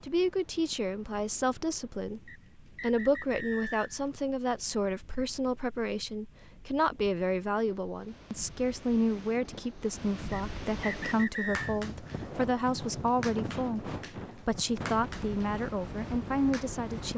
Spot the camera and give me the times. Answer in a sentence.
The camera can't be heard in this clip.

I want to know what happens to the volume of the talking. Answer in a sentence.
The loudness of the talking stays about the same.